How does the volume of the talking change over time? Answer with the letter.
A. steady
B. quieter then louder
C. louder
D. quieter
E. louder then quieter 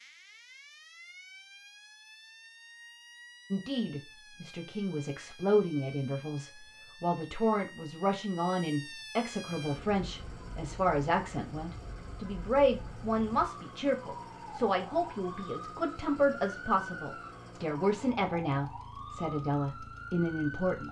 A.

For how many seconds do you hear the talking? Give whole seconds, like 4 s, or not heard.
17 s.